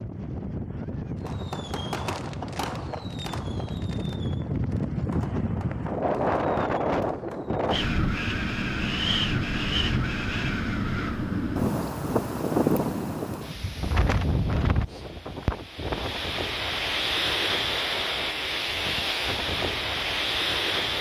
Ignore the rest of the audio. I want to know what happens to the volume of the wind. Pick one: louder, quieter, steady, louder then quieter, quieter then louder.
louder.